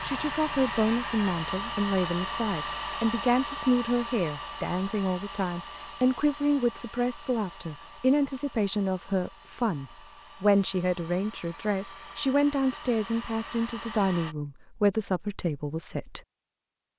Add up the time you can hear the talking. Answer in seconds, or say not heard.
16 s.